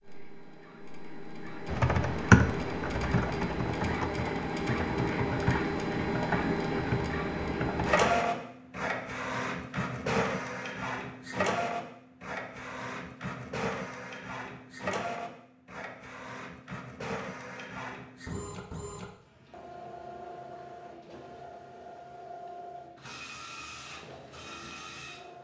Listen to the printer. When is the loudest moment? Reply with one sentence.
The loudest moment of the printer is at 8 seconds.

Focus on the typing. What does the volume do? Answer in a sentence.
The volume of the typing goes down.